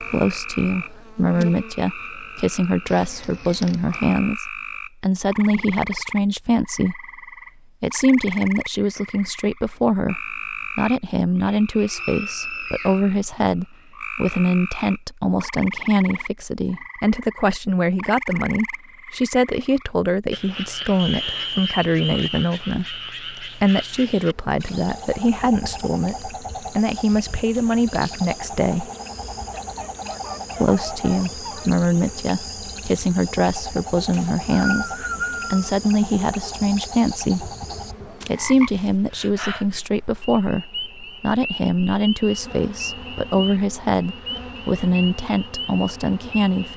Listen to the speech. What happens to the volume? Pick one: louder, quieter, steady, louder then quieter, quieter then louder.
steady.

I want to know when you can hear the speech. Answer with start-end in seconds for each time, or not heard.
0.0-7.0, 7.8-28.9, 30.6-37.5, 38.2-46.7.